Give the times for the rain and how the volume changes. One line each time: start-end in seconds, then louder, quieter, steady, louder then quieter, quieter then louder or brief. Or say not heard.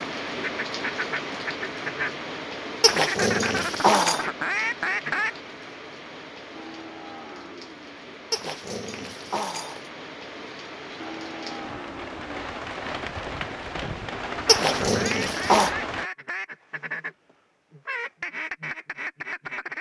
0.0-16.1 quieter then louder.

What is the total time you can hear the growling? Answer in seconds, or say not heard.
4 s.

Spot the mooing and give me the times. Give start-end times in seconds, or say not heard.
6.5-8.0, 10.9-12.3.